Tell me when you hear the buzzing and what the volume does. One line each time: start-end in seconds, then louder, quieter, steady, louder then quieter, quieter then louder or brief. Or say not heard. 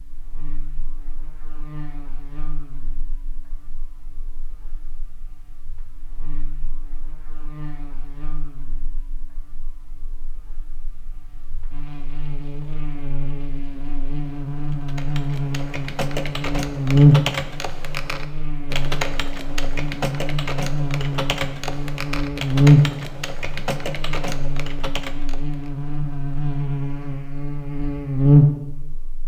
0.0-29.2 louder.